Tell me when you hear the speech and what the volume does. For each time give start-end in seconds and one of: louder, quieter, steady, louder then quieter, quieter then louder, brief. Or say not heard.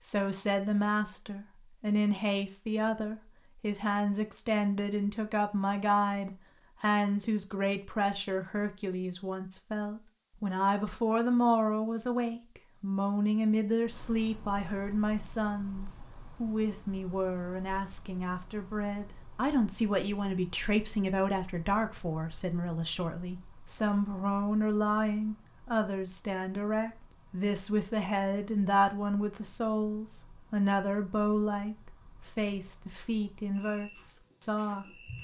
0.1-34.9 steady.